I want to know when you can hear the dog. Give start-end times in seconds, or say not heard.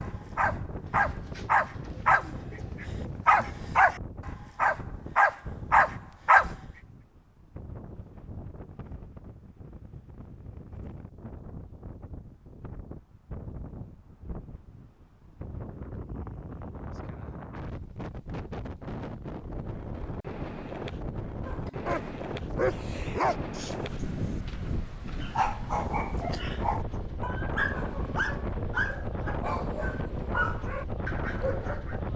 0.0-6.5, 21.4-32.0.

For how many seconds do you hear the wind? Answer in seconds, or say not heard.
32 s.